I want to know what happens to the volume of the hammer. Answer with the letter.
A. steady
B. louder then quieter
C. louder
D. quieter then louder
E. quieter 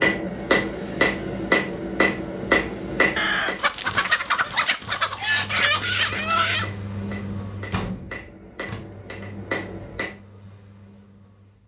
D.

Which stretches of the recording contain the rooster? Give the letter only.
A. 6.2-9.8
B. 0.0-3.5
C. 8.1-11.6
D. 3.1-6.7
D.